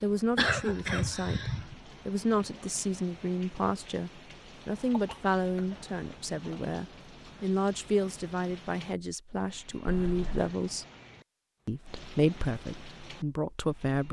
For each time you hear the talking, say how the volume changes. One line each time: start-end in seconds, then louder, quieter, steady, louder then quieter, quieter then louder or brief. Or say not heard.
0.0-10.8 steady
11.7-14.0 brief.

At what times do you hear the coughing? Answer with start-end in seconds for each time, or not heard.
0.3-1.8, 4.9-7.3, 9.8-10.6.